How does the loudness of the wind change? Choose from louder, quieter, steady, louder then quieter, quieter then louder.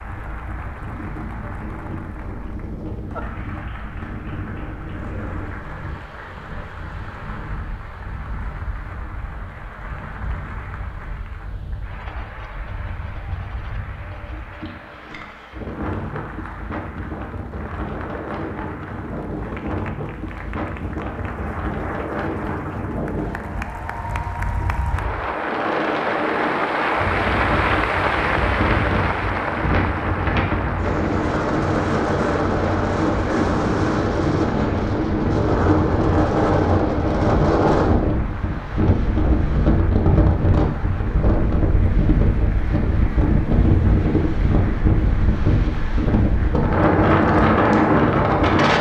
louder.